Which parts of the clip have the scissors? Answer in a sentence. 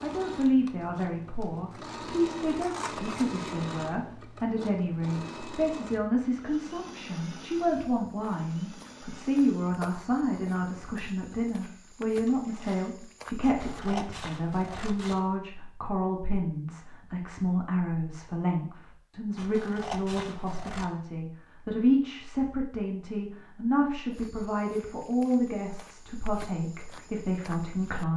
The scissors can be heard from 1.7 to 3.5 s, from 13.4 to 15.3 s and from 19.4 to 20.9 s.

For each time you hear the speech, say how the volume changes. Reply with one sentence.
The speech can be heard from 0.0 to 28.1 s, at a steady volume.